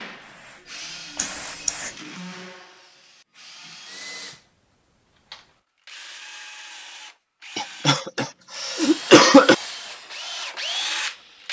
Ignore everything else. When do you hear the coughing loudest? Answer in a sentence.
The volume of the coughing peaks at 9 seconds.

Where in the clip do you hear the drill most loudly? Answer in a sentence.
The loudest moment of the drill is at 11 seconds.